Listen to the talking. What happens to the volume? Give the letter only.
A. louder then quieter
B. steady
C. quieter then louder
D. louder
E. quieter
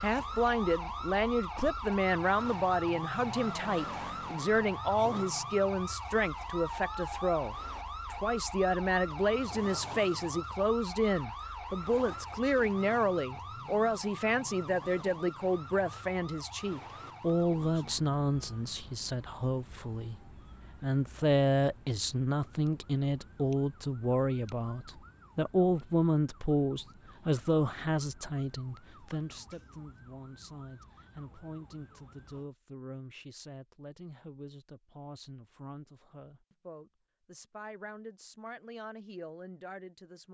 E.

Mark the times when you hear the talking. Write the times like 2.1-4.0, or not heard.
0.0-40.3.